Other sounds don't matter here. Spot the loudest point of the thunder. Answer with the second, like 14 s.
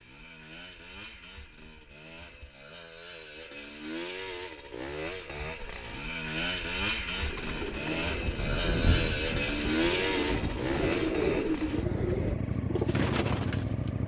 9 s.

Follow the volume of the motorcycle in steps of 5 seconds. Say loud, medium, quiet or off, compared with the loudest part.
medium, loud, loud.